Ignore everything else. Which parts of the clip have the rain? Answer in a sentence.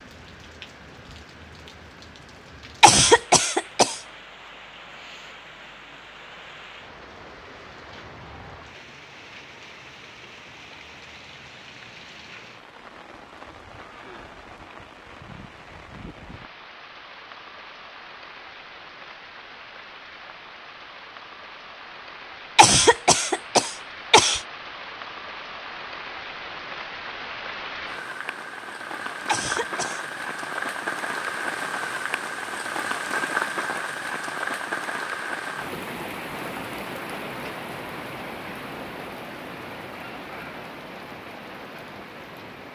You can hear the rain from 0.0 to 42.6 s.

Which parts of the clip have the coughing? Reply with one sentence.
The coughing can be heard from 2.8 to 4.0 s, from 22.6 to 24.4 s and from 29.2 to 30.1 s.